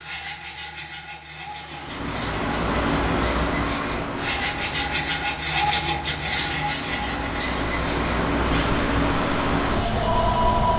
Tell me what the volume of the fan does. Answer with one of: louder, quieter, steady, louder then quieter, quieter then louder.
quieter then louder.